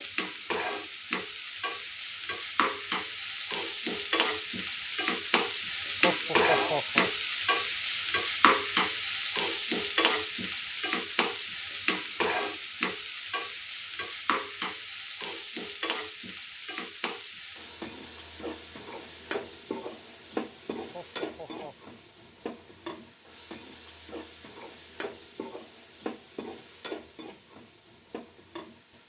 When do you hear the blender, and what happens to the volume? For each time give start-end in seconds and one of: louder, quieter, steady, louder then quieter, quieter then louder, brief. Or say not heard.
not heard.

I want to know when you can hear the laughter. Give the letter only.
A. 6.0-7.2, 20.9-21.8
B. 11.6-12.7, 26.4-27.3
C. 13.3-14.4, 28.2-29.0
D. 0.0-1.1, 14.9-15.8
A.